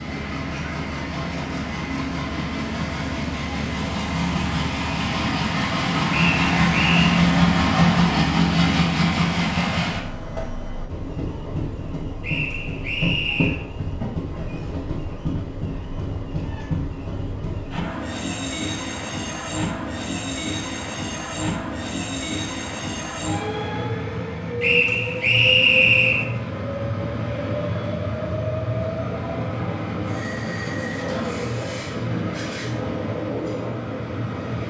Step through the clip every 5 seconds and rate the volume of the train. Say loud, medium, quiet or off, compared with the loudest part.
medium, loud, medium, medium, medium, medium, medium.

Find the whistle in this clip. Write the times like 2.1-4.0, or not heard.
6.1-7.2, 12.2-13.6, 24.6-26.2.